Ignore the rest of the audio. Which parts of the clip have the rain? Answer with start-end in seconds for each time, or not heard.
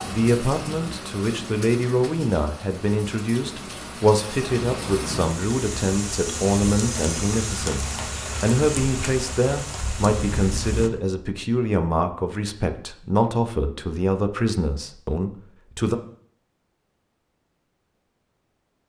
0.0-10.9.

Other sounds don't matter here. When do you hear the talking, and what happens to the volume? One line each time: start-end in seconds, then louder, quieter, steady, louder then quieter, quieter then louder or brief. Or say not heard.
0.0-15.9 steady.